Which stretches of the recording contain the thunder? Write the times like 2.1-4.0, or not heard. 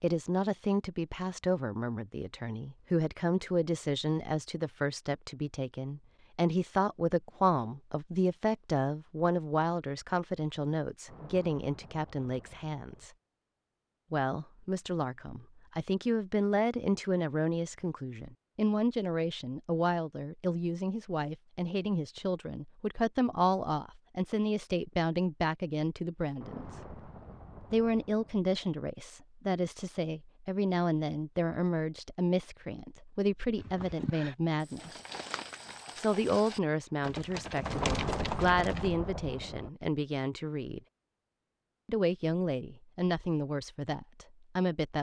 11.1-13.1, 26.4-28.4, 37.7-39.7.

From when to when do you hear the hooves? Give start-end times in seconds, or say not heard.
33.5-39.0.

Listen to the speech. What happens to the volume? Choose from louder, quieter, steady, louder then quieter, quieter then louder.
steady.